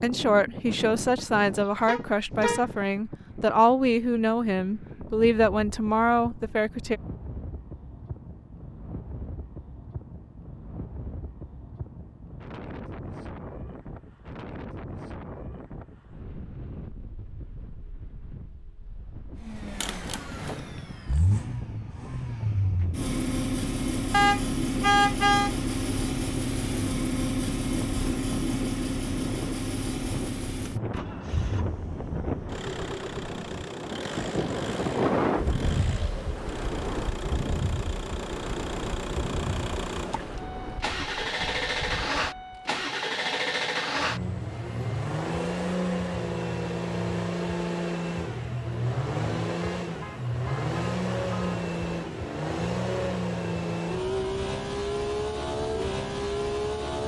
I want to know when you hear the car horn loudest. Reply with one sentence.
The volume of the car horn peaks at 25 seconds.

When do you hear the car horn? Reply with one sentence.
You can hear the car horn from 1.9 to 2.6 s, from 24.1 to 25.5 s and from 49.6 to 51.5 s.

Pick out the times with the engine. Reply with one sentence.
The engine can be heard from 19.4 to 57.0 s.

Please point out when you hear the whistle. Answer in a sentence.
The whistle can't be heard in this clip.